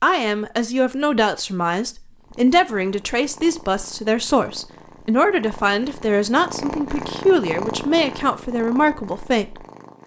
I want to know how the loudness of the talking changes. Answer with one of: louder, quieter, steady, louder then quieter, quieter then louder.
steady.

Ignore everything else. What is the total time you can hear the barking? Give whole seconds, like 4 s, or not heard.
not heard.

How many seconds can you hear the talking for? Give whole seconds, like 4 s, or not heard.
10 s.